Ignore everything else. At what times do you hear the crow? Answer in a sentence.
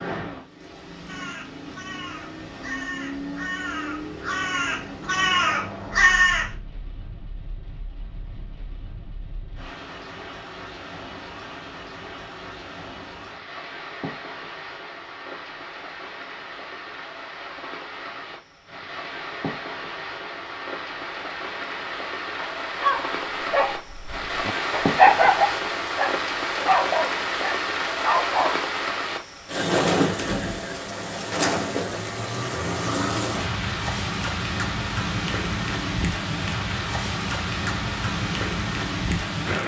You can hear the crow from 1.1 to 6.5 s.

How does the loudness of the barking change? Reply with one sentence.
The loudness of the barking goes up, then down.